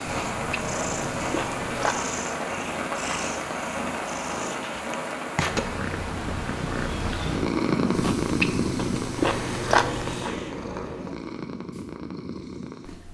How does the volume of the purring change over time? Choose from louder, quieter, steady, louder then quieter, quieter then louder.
louder then quieter.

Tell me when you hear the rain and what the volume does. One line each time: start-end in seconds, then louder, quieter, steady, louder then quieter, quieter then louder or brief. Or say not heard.
0.0-10.5 quieter.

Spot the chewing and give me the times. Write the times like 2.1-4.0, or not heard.
0.1-1.9, 8.0-10.3.